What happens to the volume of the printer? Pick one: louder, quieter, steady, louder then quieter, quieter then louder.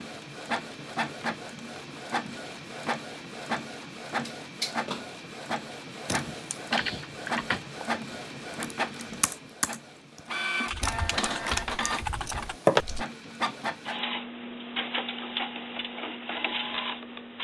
steady.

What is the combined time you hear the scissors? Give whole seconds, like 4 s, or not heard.
3 s.